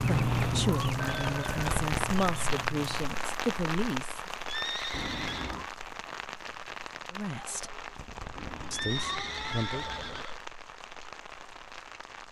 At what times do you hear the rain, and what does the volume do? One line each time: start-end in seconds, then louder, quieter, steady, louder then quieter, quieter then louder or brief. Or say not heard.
0.0-12.2 quieter.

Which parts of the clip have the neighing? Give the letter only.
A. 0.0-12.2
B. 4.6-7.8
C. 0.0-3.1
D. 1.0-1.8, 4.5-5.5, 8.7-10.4
D.